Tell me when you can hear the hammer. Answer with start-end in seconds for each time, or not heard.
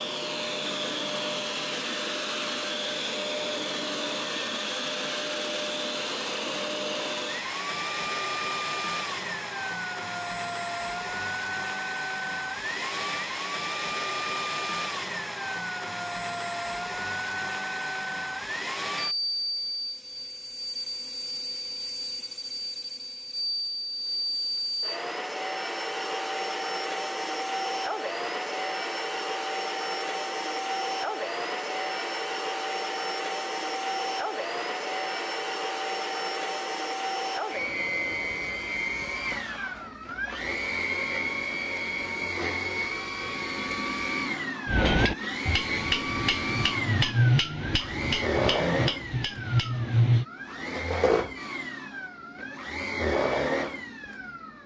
44.6-50.2.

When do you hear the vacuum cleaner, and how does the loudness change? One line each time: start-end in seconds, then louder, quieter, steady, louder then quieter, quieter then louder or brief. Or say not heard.
0.0-54.6 steady.